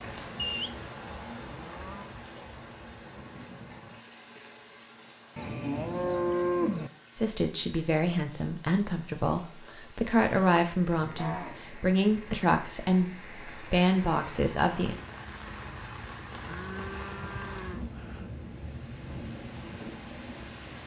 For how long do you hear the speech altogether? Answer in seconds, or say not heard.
8 s.